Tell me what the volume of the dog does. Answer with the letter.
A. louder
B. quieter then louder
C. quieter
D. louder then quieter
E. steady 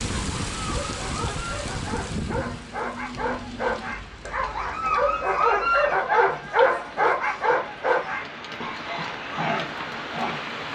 D.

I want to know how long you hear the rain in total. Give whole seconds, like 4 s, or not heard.
11 s.